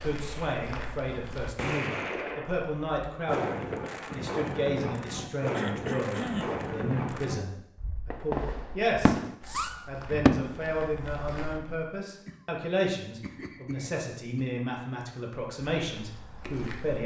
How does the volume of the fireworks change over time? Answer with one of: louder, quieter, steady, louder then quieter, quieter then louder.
louder.